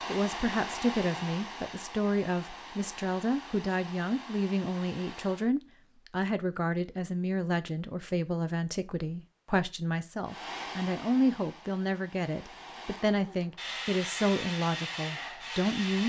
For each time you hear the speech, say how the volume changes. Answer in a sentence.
You can hear the speech from 0.1 to 16.0 s, at a steady volume.